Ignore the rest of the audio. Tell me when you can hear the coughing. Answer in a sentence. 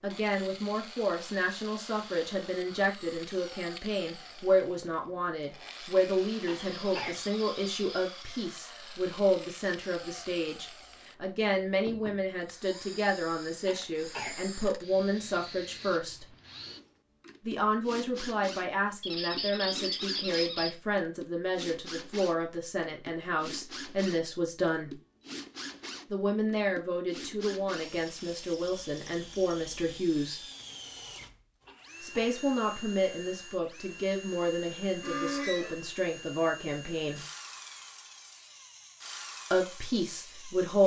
You can hear the coughing from 6.5 to 7.2 s, from 13.7 to 14.4 s and from 31.6 to 32.5 s.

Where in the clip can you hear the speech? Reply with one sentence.
The speech can be heard from 0.0 to 16.2 s, from 17.4 to 24.9 s, from 26.1 to 30.4 s, from 32.0 to 37.2 s and from 39.5 to 40.8 s.